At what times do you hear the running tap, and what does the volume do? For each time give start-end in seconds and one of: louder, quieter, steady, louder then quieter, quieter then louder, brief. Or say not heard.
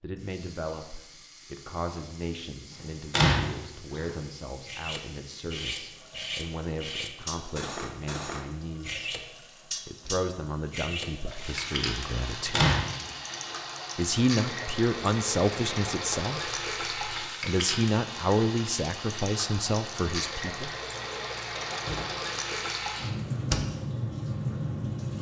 0.0-25.1 louder.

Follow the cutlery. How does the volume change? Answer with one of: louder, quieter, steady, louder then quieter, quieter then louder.
steady.